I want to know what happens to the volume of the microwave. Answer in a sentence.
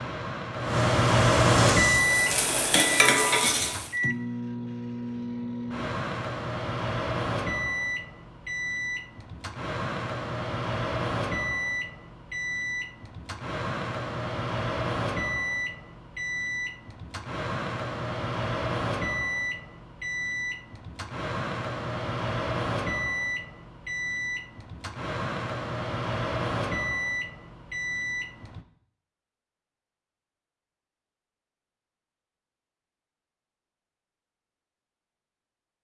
The volume of the microwave goes down.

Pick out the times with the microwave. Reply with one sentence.
You can hear the microwave from 0.0 to 28.6 s.